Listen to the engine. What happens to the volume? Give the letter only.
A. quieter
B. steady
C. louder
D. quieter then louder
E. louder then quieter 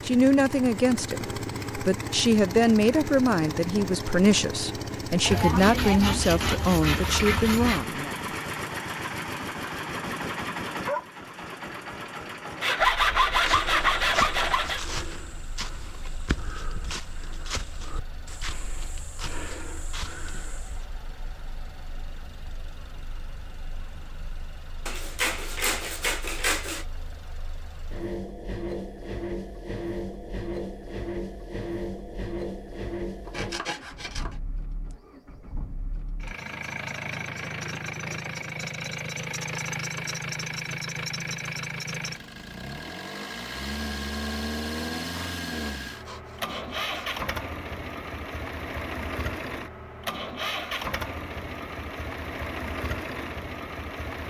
D.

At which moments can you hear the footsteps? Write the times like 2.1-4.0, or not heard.
13.3-20.9.